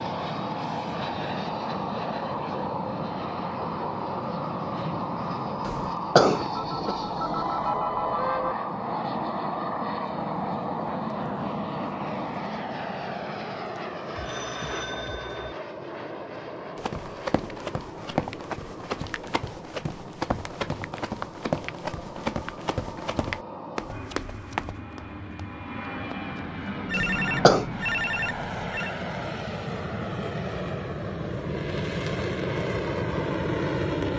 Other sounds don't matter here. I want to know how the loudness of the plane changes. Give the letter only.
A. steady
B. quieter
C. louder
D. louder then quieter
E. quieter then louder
E.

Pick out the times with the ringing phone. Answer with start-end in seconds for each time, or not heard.
6.5-8.6, 14.2-15.6, 26.9-28.9.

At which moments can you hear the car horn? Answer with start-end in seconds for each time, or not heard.
not heard.